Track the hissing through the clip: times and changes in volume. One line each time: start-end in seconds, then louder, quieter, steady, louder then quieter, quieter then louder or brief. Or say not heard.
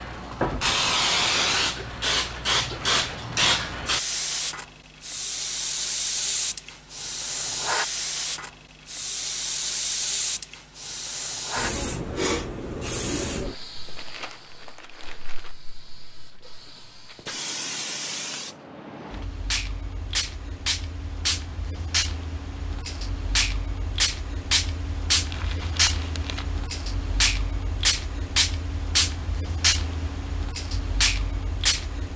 0.0-32.1 quieter then louder.